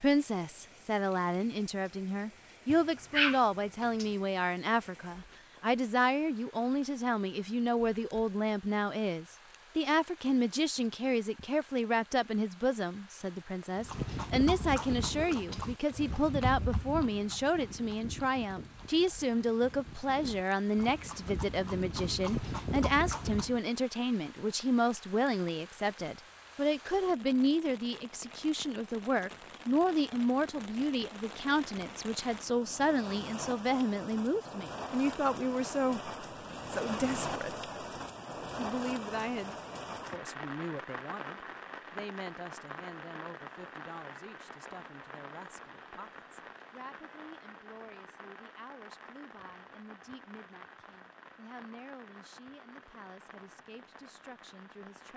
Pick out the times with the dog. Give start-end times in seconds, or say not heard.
2.6-4.0.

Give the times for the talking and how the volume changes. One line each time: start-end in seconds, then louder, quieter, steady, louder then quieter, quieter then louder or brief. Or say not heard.
0.0-37.7 steady
38.5-55.1 quieter.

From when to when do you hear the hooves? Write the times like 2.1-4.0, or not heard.
13.8-23.6.